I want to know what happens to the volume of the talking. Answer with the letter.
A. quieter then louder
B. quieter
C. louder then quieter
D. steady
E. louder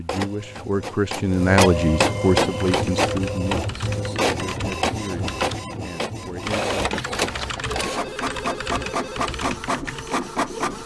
B.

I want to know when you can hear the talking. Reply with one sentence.
You can hear the talking from 0.0 to 7.0 s.